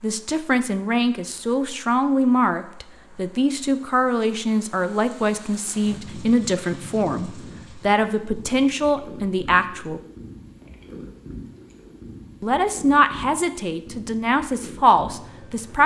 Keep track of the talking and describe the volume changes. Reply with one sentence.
The loudness of the talking stays about the same.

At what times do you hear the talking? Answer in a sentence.
You can hear the talking from 0.0 to 10.0 s and from 12.4 to 15.8 s.